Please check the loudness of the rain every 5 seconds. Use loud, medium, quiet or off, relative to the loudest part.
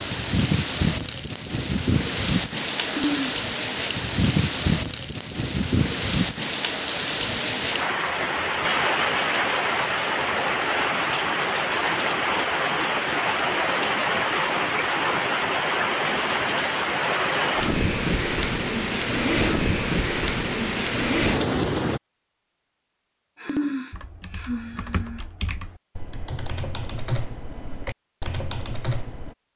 loud, loud, loud, loud, loud, off.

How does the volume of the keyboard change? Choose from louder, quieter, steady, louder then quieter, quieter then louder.
louder.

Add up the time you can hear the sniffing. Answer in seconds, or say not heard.
2 s.